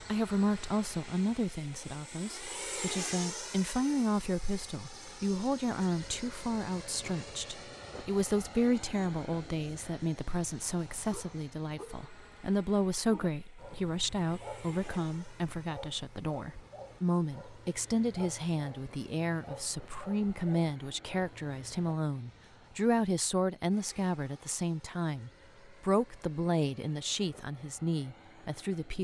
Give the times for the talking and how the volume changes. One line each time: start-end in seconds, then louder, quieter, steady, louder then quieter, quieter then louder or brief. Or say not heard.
0.0-28.9 steady.